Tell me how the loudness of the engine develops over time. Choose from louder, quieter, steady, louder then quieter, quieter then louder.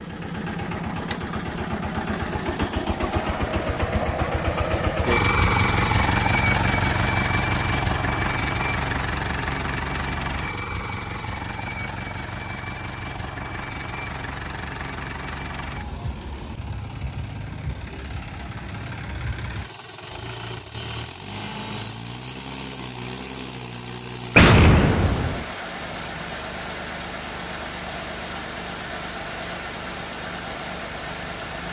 quieter.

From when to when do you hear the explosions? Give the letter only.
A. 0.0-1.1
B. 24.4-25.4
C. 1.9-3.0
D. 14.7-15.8
B.